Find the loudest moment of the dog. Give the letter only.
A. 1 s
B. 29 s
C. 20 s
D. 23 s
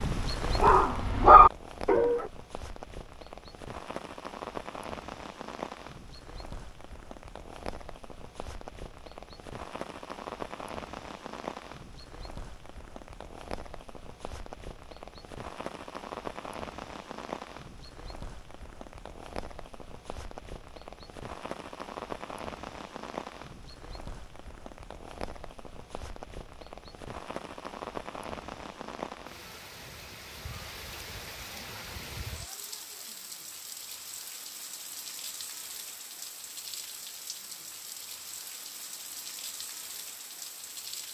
A.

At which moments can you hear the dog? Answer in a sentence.
You can hear the dog from 0.0 to 2.2 s.